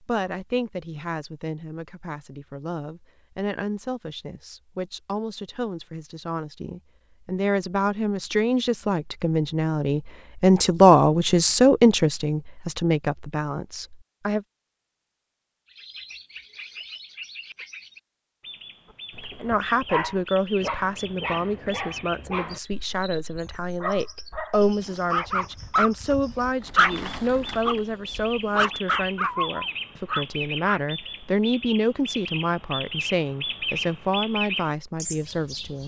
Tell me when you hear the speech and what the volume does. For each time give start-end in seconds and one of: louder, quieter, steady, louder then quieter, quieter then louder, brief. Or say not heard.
0.0-14.4 louder
19.4-35.8 steady.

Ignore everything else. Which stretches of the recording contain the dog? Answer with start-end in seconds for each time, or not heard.
19.1-30.8.